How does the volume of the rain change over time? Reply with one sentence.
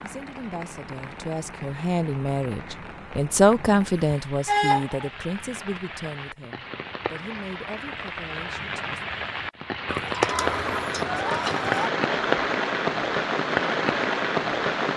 The volume of the rain goes up.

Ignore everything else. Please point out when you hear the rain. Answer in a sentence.
You can hear the rain from 0.0 to 14.9 s.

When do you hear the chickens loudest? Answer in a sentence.
The loudest moment of the chickens is at 5 seconds.